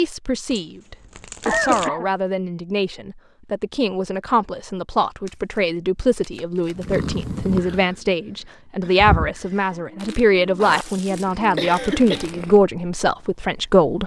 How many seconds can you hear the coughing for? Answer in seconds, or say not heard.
3 s.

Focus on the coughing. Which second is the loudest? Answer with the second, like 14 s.
2 s.